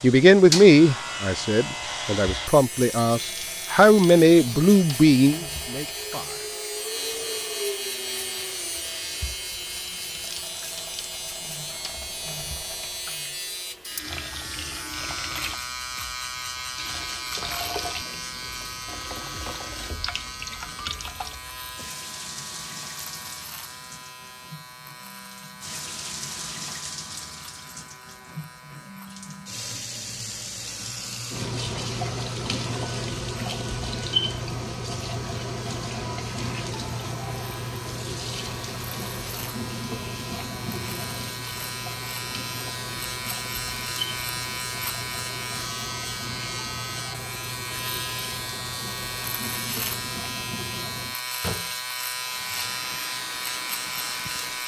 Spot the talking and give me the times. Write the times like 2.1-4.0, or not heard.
0.0-6.5.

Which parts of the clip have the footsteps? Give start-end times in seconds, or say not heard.
not heard.